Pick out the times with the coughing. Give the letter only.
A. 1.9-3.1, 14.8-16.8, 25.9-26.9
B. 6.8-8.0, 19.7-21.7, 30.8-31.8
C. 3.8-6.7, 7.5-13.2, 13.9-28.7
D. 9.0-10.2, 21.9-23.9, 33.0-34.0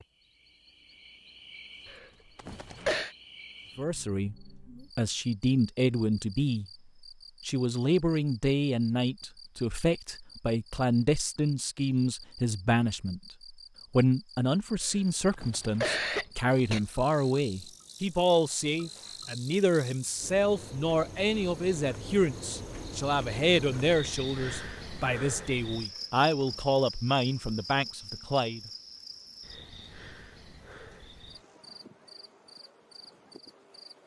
A.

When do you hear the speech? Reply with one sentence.
You can hear the speech from 3.8 to 6.7 s, from 7.5 to 13.2 s and from 13.9 to 28.7 s.